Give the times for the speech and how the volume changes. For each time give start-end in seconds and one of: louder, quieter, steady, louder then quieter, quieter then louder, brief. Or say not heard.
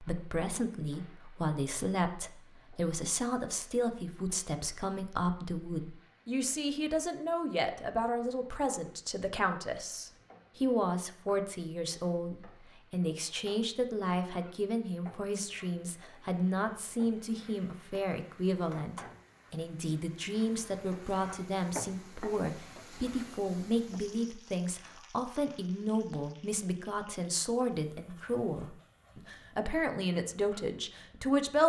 0.0-31.6 steady.